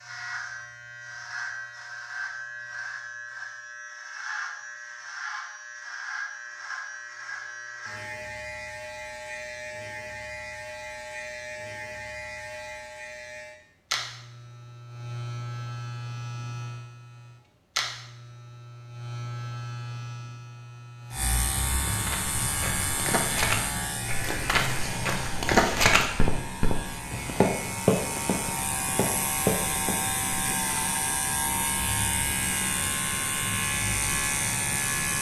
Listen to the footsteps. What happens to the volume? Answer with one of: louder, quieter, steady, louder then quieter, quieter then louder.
louder then quieter.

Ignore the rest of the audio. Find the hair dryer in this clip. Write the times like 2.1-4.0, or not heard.
not heard.